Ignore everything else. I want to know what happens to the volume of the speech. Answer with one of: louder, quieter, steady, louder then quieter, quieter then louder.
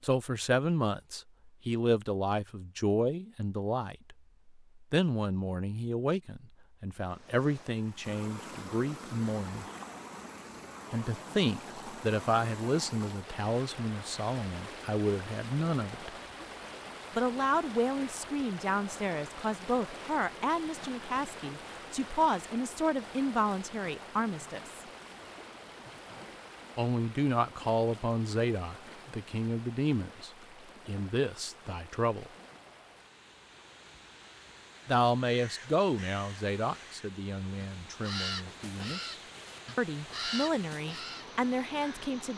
steady.